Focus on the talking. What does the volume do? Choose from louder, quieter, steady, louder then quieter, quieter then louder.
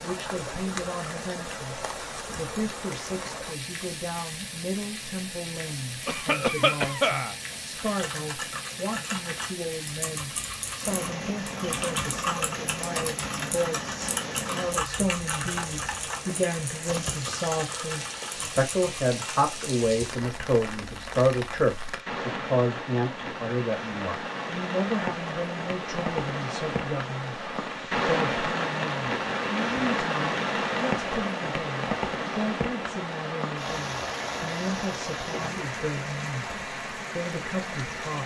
louder then quieter.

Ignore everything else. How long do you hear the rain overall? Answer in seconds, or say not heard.
38 s.